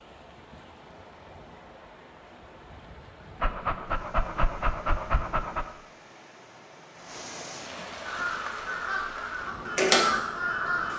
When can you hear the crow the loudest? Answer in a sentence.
The loudest moment of the crow is at 10 seconds.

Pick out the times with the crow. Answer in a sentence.
You can hear the crow from 8.0 to 10.9 s.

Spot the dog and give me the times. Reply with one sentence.
You can hear the dog from 3.4 to 5.7 s.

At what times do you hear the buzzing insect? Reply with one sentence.
You can't hear the buzzing insect here.